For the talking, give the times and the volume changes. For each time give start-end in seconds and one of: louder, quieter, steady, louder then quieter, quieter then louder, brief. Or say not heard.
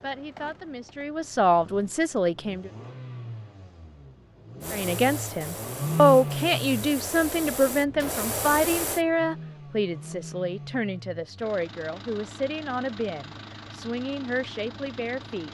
0.0-2.7 brief
4.7-15.4 quieter.